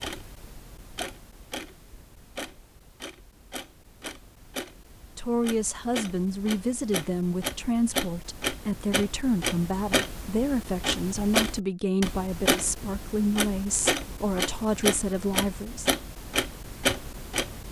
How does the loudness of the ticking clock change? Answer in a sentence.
The loudness of the ticking clock goes up.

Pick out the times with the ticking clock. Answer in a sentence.
You can hear the ticking clock from 0.0 to 17.6 s.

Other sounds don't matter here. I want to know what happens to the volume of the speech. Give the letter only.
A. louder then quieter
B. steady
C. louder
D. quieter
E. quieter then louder
B.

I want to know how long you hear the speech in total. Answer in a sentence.
The speech can be heard for 11 seconds in total.